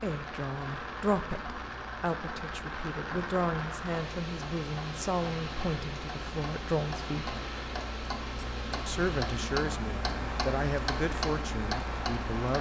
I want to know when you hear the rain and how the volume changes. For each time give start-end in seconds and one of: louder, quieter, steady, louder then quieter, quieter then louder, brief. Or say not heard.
0.0-12.5 steady.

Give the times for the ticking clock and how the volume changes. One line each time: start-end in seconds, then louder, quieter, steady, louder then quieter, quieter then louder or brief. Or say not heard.
0.1-12.5 louder.